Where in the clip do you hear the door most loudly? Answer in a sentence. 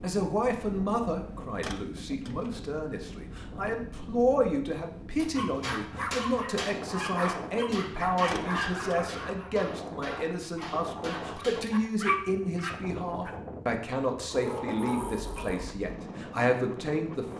The volume of the door peaks at 15 seconds.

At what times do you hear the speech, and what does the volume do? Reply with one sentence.
You can hear the speech from 0.0 to 17.3 s, at a steady volume.